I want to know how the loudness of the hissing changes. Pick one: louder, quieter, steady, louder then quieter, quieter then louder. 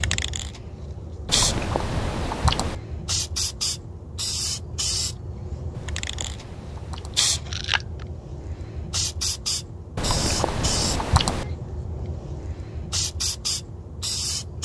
steady.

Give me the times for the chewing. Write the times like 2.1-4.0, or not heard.
1.2-2.8, 5.8-8.1, 9.9-11.6.